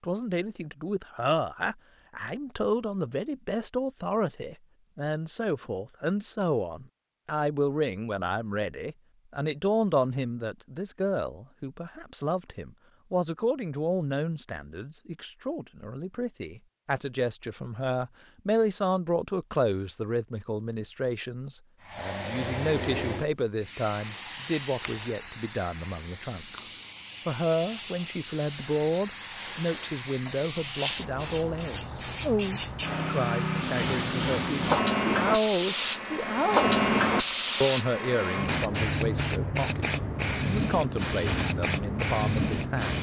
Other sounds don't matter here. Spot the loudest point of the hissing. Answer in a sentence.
The loudest moment of the hissing is at 37 seconds.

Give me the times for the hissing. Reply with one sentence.
You can hear the hissing from 21.8 to 42.9 s.